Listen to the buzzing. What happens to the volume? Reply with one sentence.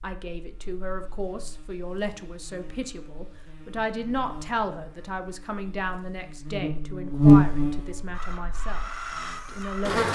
The loudness of the buzzing goes up, then down.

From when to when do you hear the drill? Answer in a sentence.
You can hear the drill from 8.1 to 10.0 s.